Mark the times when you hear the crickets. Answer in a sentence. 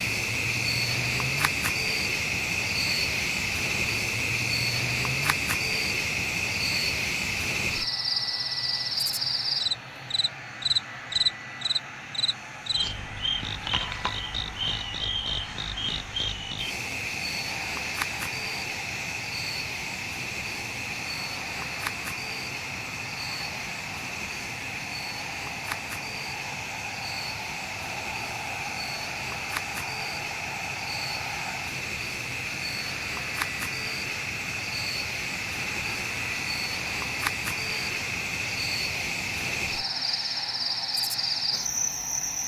The crickets can be heard from 0.0 to 42.4 s.